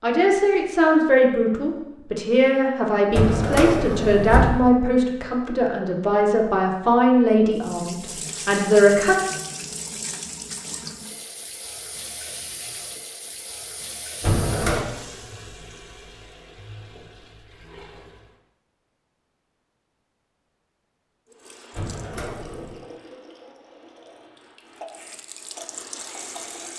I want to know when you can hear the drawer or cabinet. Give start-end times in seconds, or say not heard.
3.1-4.7, 14.2-14.8, 21.7-22.8.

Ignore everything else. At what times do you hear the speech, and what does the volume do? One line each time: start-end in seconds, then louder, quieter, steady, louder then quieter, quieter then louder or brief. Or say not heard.
0.0-9.2 steady.